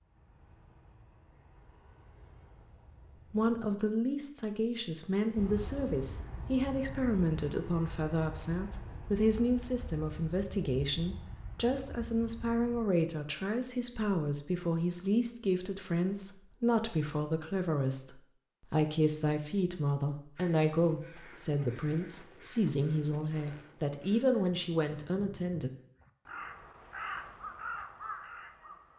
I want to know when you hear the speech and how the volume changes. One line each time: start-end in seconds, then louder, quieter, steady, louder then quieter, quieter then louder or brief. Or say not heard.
3.3-25.7 steady.